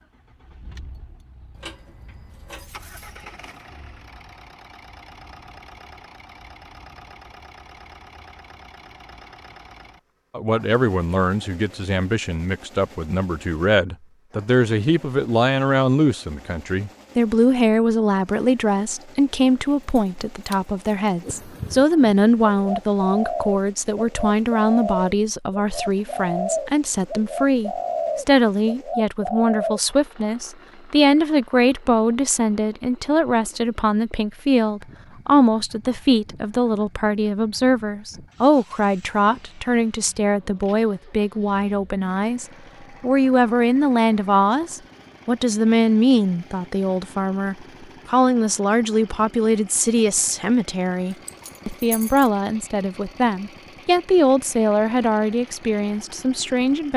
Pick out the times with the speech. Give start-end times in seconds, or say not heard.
10.3-56.9.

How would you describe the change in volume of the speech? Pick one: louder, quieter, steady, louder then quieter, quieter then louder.
steady.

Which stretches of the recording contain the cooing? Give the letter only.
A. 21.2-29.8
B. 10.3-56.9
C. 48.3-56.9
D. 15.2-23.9
A.